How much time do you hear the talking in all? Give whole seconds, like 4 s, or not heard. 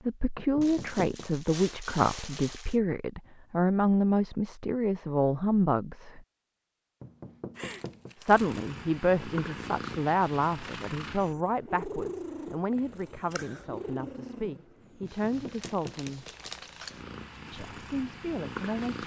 16 s.